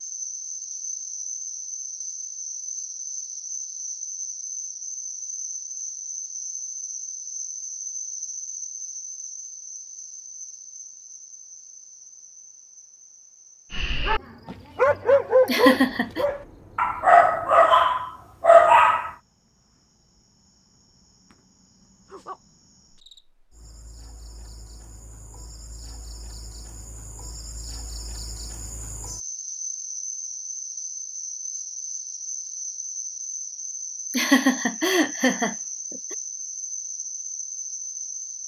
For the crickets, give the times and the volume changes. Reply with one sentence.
The crickets can be heard from 0.0 to 38.4 s, getting quieter then louder.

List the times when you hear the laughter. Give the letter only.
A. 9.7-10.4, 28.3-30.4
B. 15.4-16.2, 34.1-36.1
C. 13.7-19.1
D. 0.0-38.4
B.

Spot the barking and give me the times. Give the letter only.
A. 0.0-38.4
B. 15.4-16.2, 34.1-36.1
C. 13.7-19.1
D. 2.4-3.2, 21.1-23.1
C.